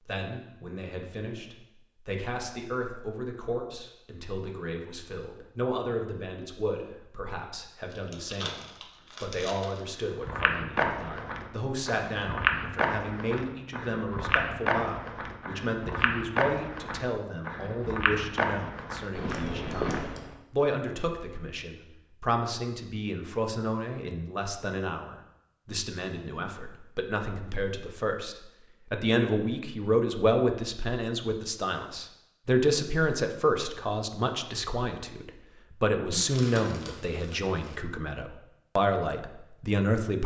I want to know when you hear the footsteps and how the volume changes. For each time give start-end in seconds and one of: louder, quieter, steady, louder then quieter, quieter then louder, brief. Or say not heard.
10.1-20.4 steady.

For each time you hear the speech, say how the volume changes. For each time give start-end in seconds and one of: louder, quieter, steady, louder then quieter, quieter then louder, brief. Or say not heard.
0.0-40.2 louder.